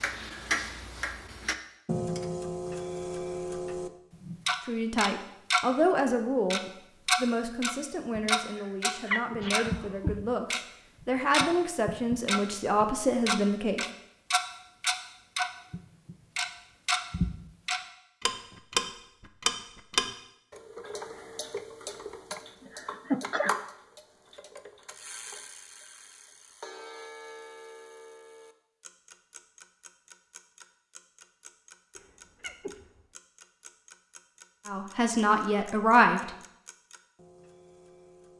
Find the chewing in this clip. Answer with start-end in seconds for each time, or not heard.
not heard.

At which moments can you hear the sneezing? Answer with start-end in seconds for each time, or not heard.
9.1-10.2, 22.3-23.6, 31.9-33.0.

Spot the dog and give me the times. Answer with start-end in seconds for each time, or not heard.
not heard.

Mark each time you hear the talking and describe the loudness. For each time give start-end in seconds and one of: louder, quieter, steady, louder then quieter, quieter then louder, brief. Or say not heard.
4.7-13.8 quieter then louder
34.6-36.3 brief.